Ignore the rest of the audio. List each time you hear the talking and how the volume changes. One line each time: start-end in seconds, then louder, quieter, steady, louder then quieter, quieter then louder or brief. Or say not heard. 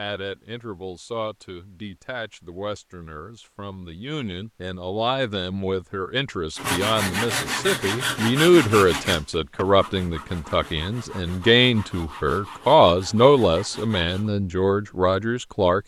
0.0-15.8 louder.